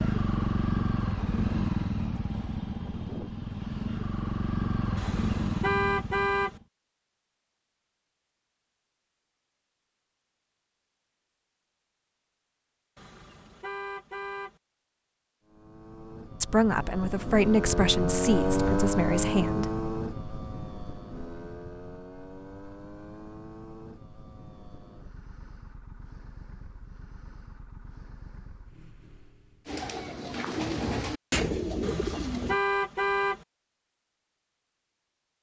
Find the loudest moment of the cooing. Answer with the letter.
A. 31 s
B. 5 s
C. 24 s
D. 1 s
A.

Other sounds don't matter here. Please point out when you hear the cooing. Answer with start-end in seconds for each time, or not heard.
29.6-32.6.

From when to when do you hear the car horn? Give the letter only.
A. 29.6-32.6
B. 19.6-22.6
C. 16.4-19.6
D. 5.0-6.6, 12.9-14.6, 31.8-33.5
D.